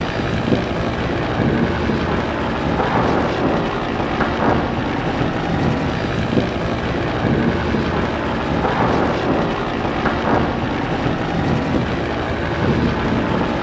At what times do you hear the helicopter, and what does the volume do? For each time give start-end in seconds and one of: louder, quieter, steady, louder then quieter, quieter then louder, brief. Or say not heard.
0.0-13.5 steady.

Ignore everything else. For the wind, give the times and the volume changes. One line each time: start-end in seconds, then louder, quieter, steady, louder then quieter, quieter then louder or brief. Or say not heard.
0.0-13.5 steady.